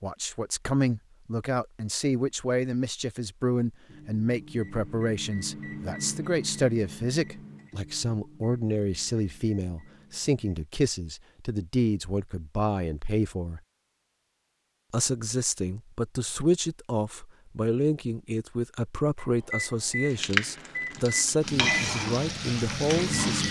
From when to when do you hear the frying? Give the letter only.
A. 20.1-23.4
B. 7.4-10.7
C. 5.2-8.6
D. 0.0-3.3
A.